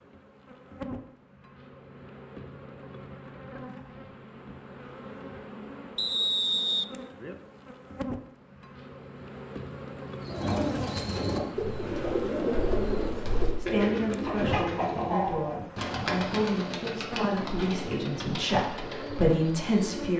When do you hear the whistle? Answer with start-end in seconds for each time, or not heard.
6.0-6.9.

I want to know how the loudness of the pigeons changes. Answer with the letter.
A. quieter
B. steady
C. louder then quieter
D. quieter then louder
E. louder
A.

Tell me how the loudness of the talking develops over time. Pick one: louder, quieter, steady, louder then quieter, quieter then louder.
louder.